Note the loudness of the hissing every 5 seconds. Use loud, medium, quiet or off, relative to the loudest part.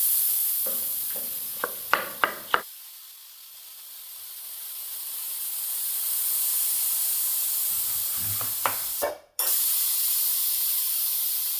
medium, loud, loud.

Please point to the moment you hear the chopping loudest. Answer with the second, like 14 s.
2 s.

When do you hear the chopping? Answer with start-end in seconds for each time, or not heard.
0.7-2.6, 7.7-8.8.